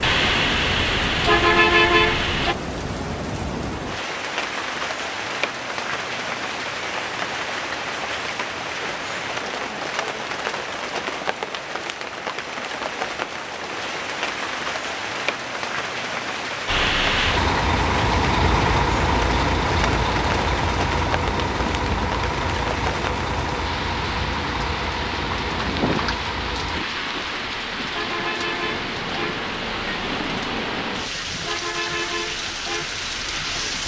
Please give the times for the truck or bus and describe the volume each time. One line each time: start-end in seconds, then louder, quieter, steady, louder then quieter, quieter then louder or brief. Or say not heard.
0.0-2.5 brief
16.6-33.8 quieter.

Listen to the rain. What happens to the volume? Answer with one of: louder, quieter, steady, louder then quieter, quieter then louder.
steady.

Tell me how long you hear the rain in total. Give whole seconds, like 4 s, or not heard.
34 s.